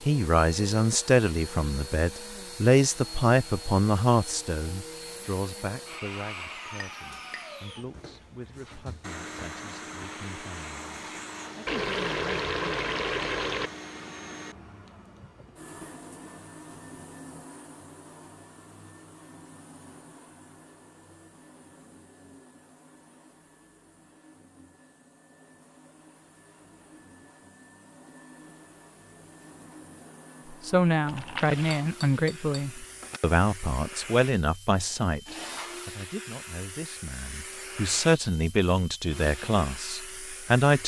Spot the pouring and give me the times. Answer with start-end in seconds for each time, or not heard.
11.7-13.7, 31.1-31.9.